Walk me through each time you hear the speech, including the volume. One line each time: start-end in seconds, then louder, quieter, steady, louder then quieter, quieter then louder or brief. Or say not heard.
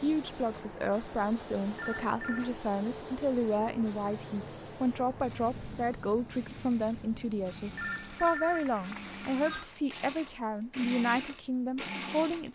0.0-12.5 steady.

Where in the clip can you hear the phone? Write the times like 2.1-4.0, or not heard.
1.8-2.5, 7.8-9.7.